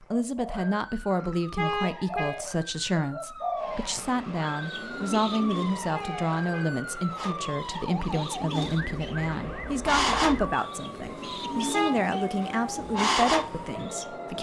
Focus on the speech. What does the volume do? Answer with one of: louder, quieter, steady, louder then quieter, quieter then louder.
steady.